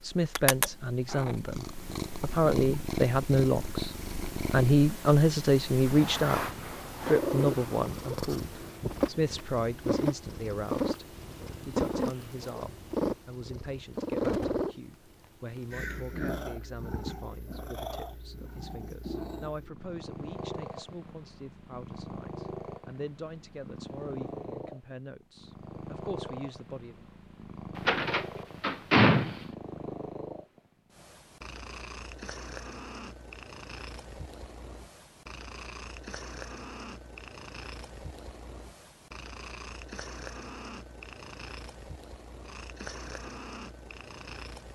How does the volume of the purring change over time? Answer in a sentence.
The loudness of the purring goes down.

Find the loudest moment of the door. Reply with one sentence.
The loudest moment of the door is at 29 seconds.